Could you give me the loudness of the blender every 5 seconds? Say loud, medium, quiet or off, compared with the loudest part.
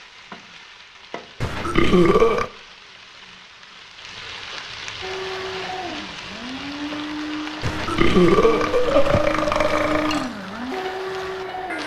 off, loud, loud.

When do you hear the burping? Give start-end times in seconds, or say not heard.
1.4-2.5, 7.6-10.3.